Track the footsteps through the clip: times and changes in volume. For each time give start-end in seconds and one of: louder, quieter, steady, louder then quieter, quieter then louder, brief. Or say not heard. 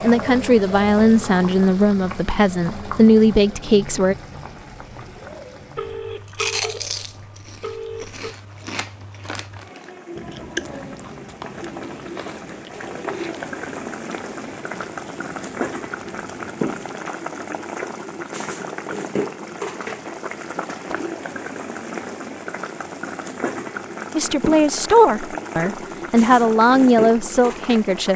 not heard.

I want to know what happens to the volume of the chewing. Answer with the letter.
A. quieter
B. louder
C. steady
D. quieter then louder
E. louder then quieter
A.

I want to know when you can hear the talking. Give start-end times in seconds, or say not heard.
0.0-4.2, 24.1-28.1.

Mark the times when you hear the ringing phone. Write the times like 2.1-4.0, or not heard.
5.8-8.3.